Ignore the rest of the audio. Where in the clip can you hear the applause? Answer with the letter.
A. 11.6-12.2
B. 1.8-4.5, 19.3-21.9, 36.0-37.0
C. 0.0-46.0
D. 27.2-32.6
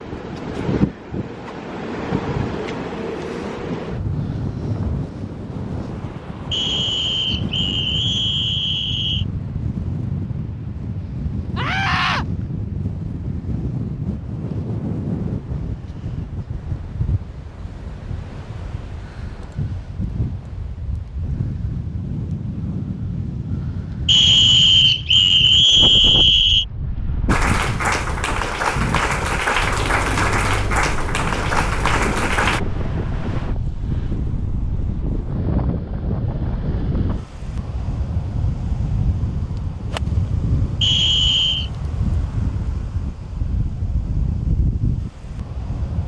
D.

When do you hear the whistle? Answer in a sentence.
The whistle can be heard from 6.5 to 9.2 s, from 24.1 to 26.6 s and from 40.8 to 41.7 s.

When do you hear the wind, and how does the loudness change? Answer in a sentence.
You can hear the wind from 0.0 to 46.0 s, at a steady volume.